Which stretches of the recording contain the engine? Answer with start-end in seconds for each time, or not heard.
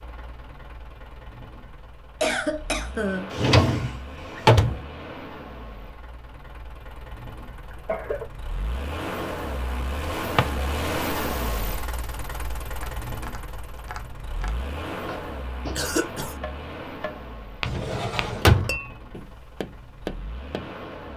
0.0-21.1.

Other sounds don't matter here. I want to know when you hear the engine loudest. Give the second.
11 s.